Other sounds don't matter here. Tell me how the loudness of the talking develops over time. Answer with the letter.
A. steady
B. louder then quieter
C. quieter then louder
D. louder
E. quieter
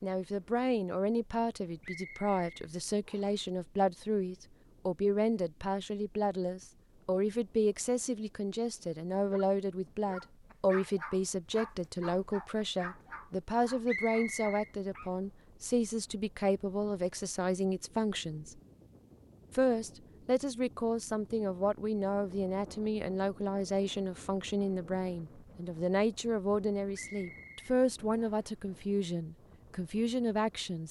A.